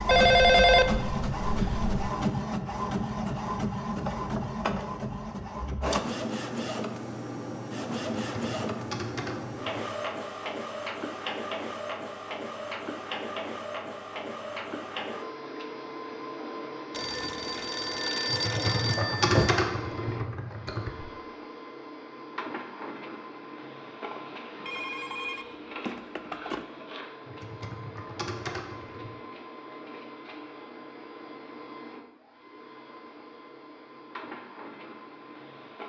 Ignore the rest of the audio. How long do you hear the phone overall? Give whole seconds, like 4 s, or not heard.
7 s.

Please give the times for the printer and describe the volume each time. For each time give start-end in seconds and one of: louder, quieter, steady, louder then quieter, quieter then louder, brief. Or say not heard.
0.0-35.8 quieter.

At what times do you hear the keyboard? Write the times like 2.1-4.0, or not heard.
8.2-9.8, 18.3-20.9, 27.2-29.1.